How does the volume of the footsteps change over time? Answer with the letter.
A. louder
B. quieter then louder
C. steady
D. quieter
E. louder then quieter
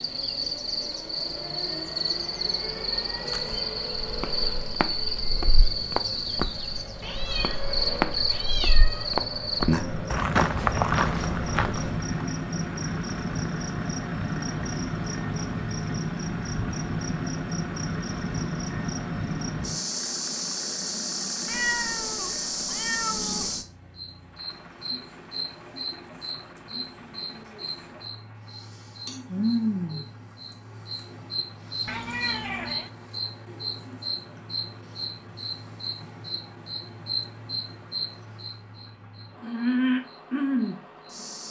A.